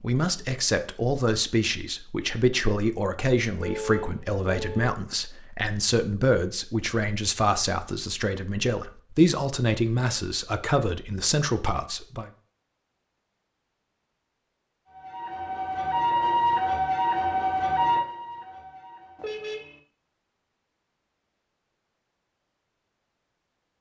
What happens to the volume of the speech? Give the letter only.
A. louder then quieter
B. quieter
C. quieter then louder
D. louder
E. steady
E.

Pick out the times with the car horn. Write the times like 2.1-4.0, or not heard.
3.6-4.9, 19.1-19.8.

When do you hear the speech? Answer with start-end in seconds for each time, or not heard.
0.0-12.3.